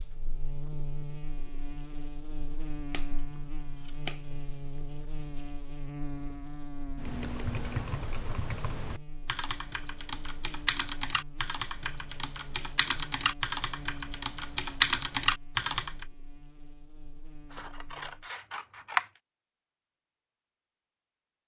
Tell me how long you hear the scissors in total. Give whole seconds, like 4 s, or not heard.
4 s.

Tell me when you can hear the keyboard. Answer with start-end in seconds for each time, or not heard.
7.0-16.1.